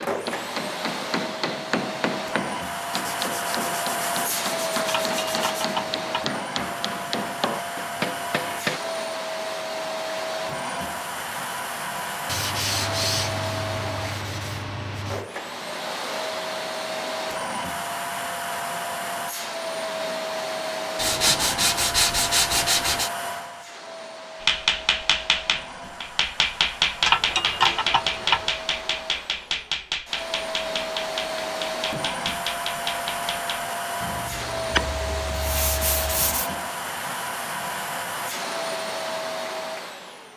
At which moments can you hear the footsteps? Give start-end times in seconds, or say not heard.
not heard.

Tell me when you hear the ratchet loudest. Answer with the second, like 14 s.
27 s.